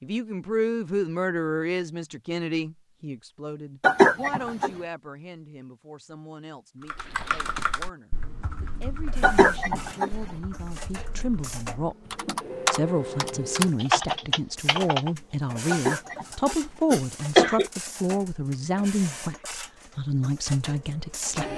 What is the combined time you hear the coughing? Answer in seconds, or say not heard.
4 s.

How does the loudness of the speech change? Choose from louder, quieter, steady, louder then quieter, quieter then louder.
quieter then louder.